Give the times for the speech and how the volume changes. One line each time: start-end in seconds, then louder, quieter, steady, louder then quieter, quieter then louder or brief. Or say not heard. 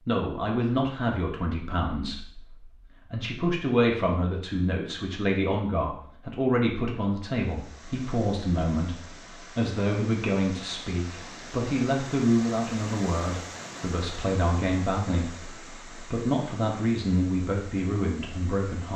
0.1-18.9 steady.